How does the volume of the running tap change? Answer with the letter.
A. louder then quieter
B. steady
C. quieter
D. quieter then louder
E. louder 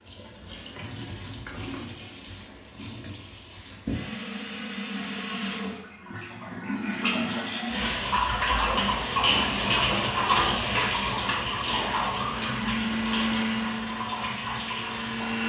A.